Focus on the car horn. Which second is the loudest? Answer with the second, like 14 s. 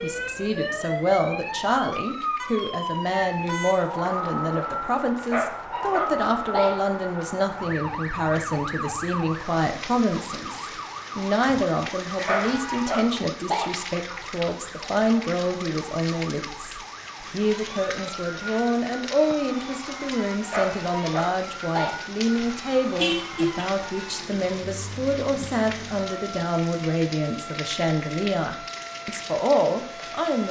23 s.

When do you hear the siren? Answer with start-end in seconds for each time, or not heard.
0.0-30.4.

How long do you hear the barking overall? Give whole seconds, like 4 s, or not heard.
5 s.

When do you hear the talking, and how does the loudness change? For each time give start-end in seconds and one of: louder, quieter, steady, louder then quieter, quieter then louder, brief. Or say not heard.
0.0-30.4 steady.